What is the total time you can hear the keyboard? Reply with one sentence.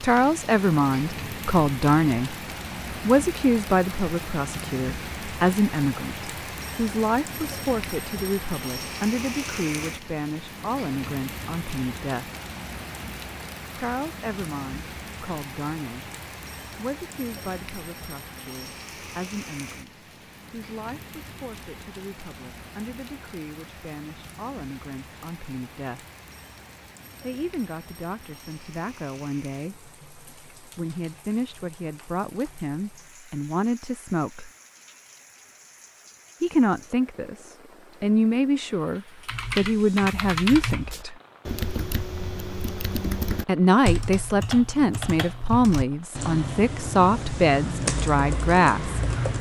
You can hear the keyboard for 10 seconds altogether.